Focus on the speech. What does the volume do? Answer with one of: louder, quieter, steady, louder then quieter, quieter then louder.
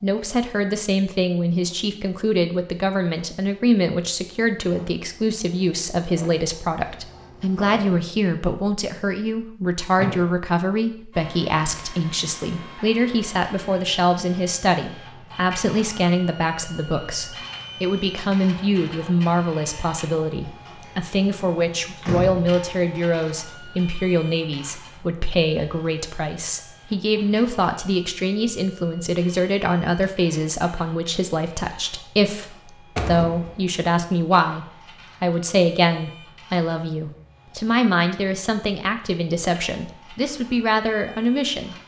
steady.